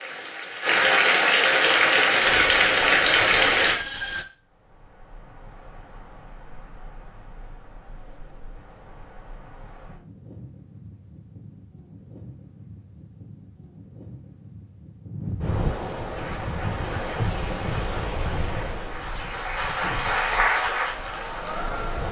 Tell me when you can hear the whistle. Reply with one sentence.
The whistle can't be heard in this clip.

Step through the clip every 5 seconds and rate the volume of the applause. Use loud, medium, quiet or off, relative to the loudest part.
loud, off, off, quiet, medium.